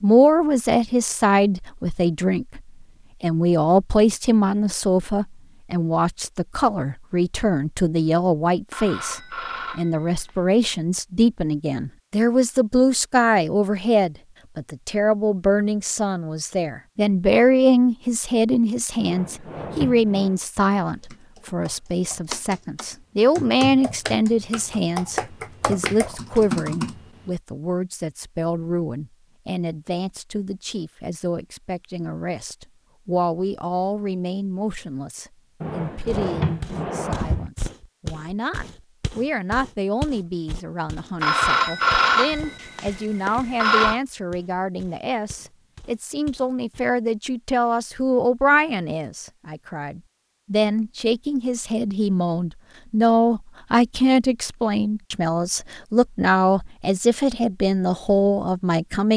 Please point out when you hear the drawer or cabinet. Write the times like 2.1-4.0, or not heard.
18.9-20.4, 35.6-37.5.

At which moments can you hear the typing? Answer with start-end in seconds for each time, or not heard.
20.9-27.3.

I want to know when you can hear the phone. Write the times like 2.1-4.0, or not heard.
8.7-10.4, 41.2-44.0.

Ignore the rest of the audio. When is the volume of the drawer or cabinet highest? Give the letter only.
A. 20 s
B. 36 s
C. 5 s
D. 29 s
B.